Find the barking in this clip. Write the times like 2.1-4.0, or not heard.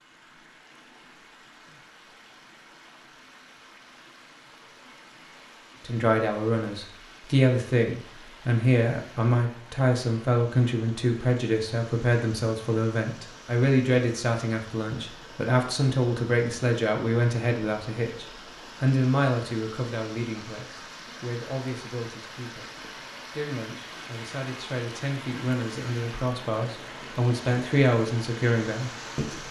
not heard.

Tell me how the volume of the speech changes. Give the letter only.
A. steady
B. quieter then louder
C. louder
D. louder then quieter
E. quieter
B.